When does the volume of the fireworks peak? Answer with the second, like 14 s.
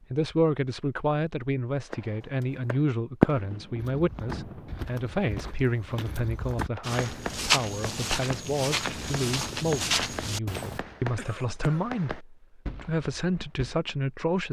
3 s.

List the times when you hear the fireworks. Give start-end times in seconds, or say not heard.
1.9-5.5, 6.8-13.8.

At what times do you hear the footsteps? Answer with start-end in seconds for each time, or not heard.
3.8-10.8.